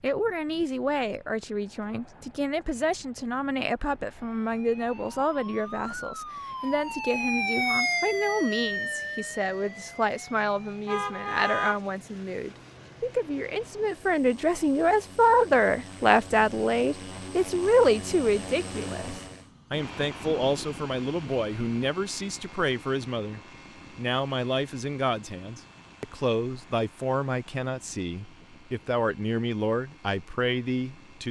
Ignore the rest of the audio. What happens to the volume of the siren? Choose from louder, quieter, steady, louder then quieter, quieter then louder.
louder then quieter.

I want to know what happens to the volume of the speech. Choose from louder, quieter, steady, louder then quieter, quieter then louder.
louder then quieter.